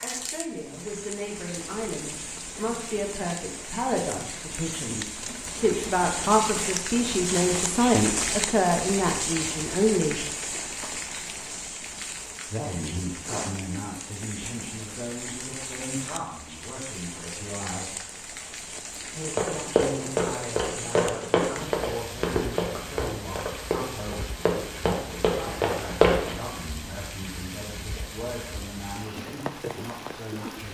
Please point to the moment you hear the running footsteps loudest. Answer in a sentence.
The loudest moment of the running footsteps is at 26 seconds.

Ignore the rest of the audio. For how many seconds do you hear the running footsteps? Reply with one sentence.
You can hear the running footsteps for 7 seconds altogether.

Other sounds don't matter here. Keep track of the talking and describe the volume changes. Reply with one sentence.
The volume of the talking goes up, then down.